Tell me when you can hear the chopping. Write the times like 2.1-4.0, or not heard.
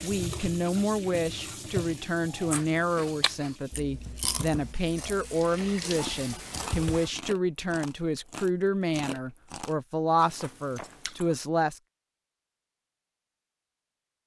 not heard.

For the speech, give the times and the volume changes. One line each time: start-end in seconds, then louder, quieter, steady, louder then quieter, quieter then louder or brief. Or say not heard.
0.0-11.8 steady.